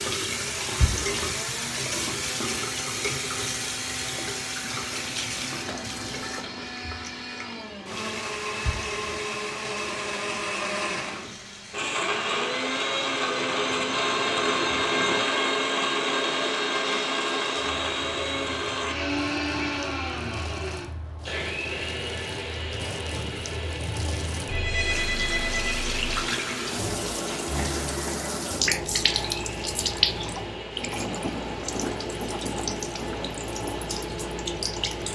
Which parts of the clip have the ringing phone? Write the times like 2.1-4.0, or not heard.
13.4-15.2, 24.4-26.1.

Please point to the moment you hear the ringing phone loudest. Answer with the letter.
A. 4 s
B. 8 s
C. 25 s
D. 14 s
C.